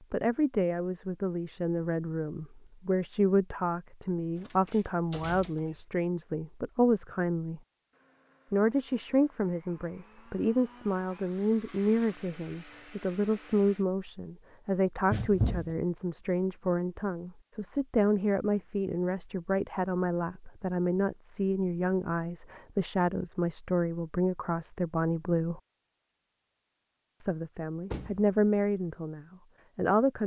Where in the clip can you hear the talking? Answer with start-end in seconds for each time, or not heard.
0.1-7.6, 8.5-25.6, 27.2-30.2.